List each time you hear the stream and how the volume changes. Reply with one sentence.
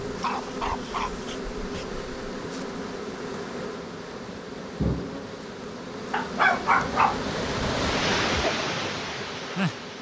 The stream can be heard from 0.0 to 9.9 s, getting louder.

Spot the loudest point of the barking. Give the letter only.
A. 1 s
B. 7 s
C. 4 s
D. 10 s
B.